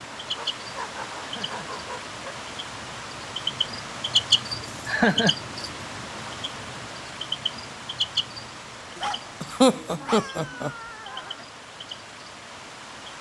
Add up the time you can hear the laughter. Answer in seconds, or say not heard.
3 s.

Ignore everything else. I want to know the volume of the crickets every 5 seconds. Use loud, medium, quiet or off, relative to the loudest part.
loud, loud, quiet.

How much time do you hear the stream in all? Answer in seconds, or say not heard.
13 s.